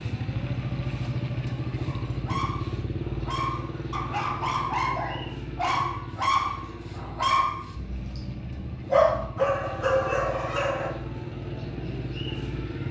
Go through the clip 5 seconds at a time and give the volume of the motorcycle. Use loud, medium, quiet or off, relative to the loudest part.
loud, medium, loud.